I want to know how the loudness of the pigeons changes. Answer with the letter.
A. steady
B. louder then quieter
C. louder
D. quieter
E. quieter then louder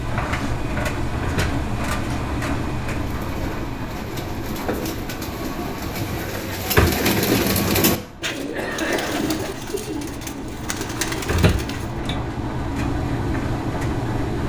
B.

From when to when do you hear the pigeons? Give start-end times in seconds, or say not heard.
3.0-12.0.